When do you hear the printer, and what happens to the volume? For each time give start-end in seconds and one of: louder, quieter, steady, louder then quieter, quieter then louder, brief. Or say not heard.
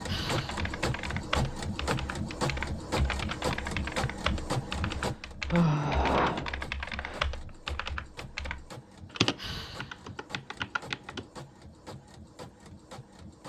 0.0-13.4 quieter.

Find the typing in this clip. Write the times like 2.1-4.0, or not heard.
0.2-11.2.